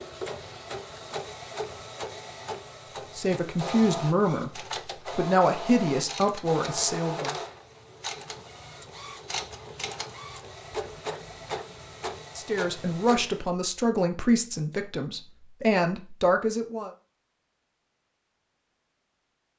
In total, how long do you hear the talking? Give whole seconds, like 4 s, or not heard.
9 s.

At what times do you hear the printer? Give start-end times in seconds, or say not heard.
0.0-13.4.